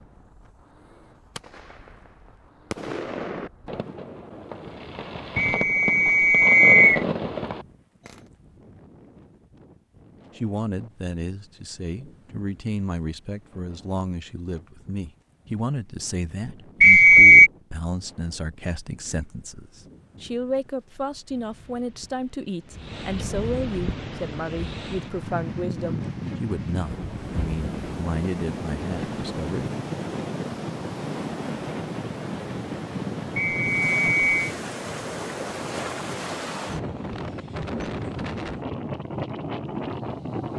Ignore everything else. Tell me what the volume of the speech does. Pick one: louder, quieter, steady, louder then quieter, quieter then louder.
steady.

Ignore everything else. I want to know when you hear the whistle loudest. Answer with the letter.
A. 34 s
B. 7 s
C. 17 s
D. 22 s
C.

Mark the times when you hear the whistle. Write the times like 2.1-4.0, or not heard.
5.3-7.0, 16.8-17.5, 33.4-34.4.